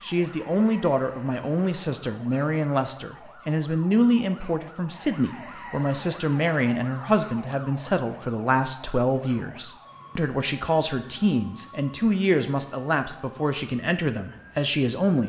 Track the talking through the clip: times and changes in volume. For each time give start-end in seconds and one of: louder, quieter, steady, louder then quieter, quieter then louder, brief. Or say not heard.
0.0-15.2 steady.